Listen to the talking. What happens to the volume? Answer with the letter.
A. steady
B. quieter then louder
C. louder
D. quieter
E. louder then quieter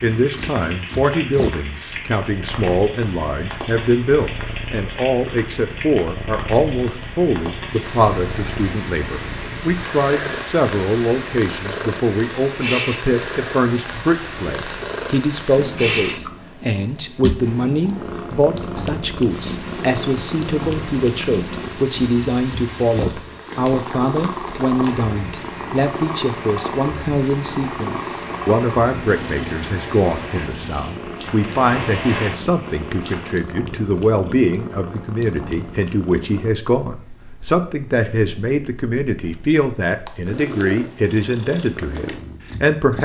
A.